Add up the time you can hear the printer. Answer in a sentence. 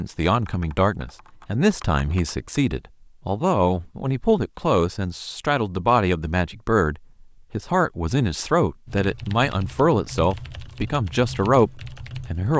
The printer can't be heard in this clip.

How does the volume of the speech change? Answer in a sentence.
The loudness of the speech stays about the same.